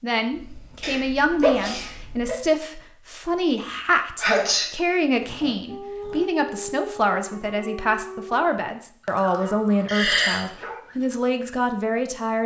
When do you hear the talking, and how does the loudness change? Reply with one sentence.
You can hear the talking from 0.0 to 12.4 s, at a steady volume.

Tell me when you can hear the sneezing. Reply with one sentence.
You can hear the sneezing from 0.8 to 2.4 s, from 4.2 to 4.7 s and from 9.8 to 10.4 s.